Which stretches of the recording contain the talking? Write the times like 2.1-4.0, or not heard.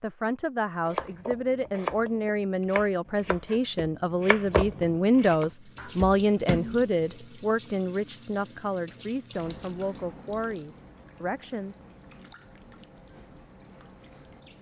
0.0-11.8.